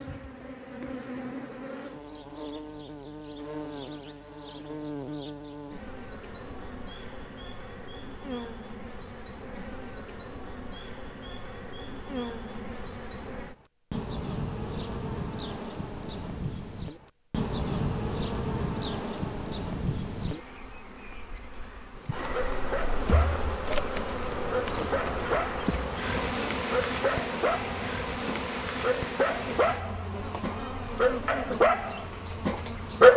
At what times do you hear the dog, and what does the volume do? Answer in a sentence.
You can hear the dog from 22.3 to 33.1 s, getting louder.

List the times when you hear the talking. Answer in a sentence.
The talking can't be heard in this clip.